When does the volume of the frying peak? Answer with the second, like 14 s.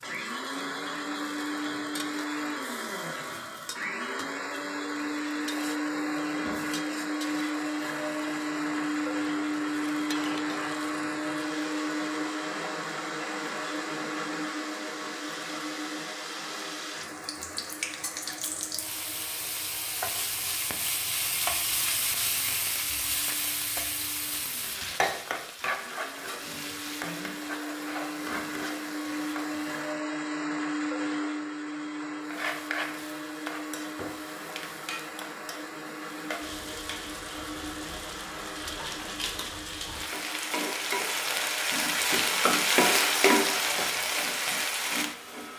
43 s.